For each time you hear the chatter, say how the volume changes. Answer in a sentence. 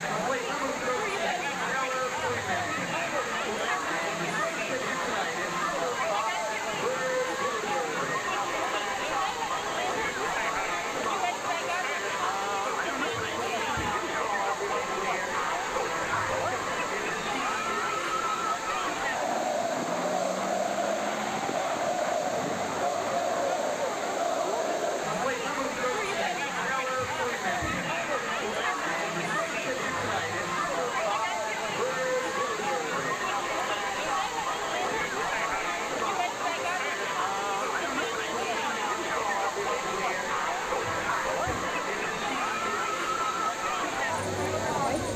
You can hear the chatter from 0.0 to 45.1 s, at a steady volume.